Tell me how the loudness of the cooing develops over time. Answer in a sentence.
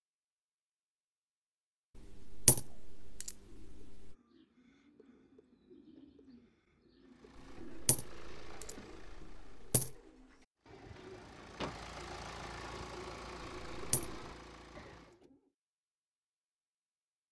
The volume of the cooing goes up.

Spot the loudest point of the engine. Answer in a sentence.
The volume of the engine peaks at 12 seconds.